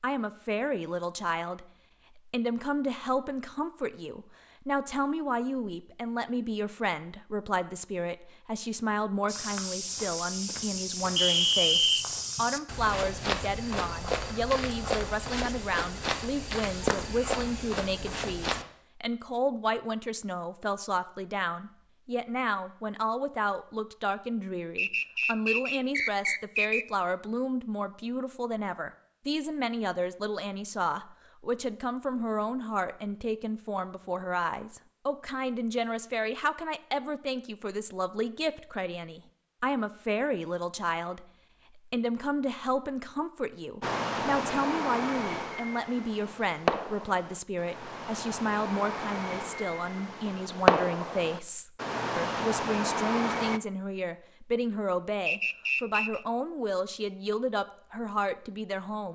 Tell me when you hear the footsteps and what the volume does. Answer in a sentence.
You can hear the footsteps from 9.2 to 18.6 s, at a steady volume.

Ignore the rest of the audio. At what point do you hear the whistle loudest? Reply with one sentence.
The volume of the whistle peaks at 12 seconds.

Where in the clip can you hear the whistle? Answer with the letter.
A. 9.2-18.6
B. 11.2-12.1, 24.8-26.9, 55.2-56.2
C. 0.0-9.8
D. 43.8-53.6
B.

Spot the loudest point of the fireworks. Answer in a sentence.
The volume of the fireworks peaks at 51 seconds.